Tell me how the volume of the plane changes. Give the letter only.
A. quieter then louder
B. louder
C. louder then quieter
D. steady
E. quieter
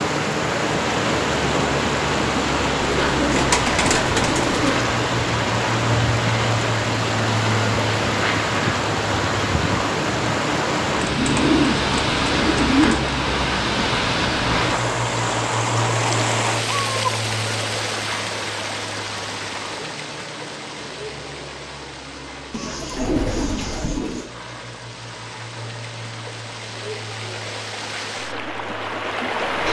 E.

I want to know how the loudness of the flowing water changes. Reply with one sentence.
The volume of the flowing water goes down.